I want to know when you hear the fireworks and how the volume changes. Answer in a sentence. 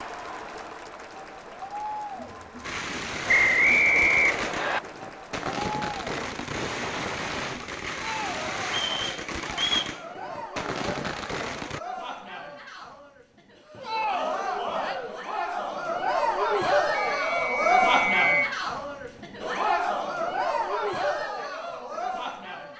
You can hear the fireworks from 2.6 to 11.8 s, at a steady volume.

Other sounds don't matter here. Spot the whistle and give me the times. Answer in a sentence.
The whistle can be heard from 3.2 to 4.8 s, from 8.7 to 9.9 s and from 16.9 to 18.5 s.